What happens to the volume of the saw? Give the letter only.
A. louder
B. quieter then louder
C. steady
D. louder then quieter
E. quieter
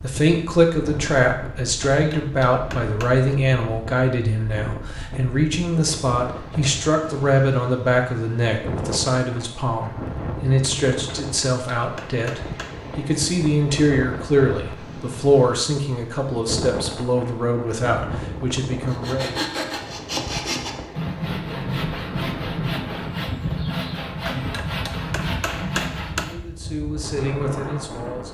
C.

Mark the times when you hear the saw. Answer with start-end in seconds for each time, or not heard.
18.9-26.4.